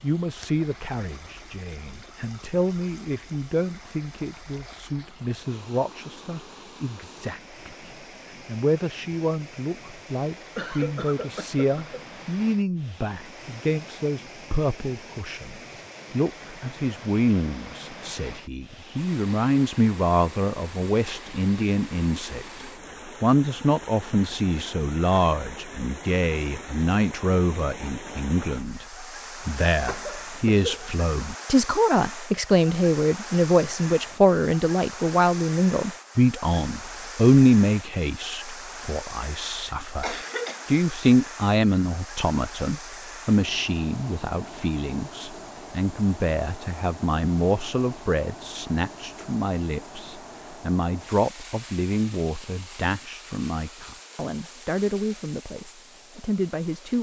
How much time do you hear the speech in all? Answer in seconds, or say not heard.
57 s.